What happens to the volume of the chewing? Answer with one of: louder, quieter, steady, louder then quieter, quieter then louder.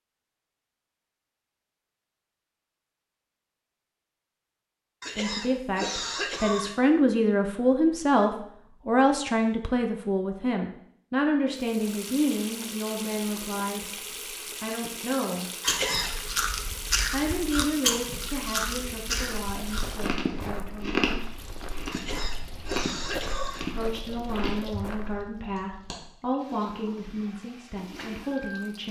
quieter.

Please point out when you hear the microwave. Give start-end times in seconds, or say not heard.
not heard.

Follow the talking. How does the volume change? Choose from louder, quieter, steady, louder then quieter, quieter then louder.
quieter.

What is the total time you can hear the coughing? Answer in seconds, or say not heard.
4 s.